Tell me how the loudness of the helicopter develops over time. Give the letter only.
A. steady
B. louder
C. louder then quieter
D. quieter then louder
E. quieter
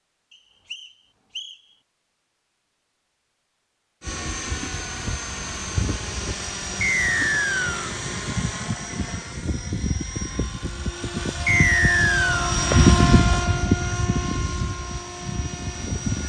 C.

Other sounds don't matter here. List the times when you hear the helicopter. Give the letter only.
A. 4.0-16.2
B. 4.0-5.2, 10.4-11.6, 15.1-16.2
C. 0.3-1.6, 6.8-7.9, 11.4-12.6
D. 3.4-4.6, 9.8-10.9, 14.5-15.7
A.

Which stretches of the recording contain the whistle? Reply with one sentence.
The whistle can be heard from 0.3 to 1.6 s, from 6.8 to 7.9 s and from 11.4 to 12.6 s.